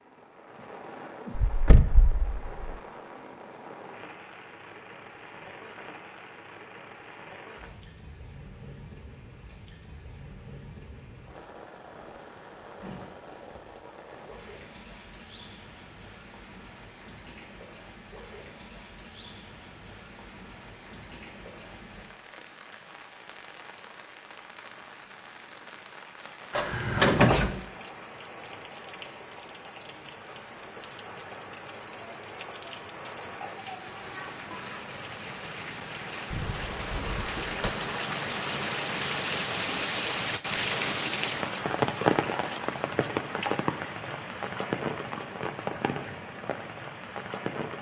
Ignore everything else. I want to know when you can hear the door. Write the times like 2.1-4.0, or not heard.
1.4-2.8, 26.5-27.6, 36.3-37.7.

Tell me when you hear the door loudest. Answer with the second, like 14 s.
27 s.